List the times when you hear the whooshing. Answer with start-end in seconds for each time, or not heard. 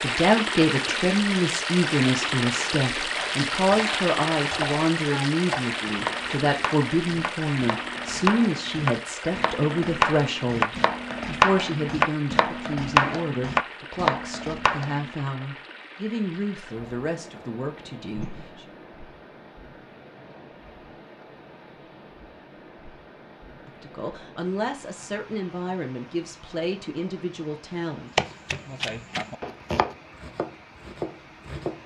18.1-18.6.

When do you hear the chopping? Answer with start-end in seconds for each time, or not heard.
3.1-15.1, 28.1-31.8.